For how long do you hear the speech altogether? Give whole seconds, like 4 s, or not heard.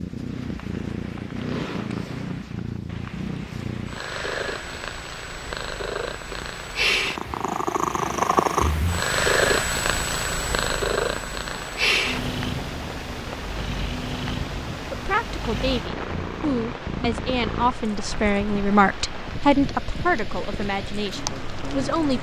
7 s.